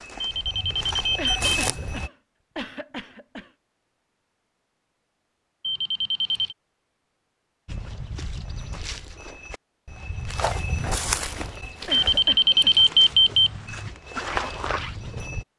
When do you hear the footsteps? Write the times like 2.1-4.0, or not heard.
0.0-2.1, 7.7-15.4.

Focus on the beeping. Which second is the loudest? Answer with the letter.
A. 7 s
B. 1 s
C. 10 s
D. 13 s
D.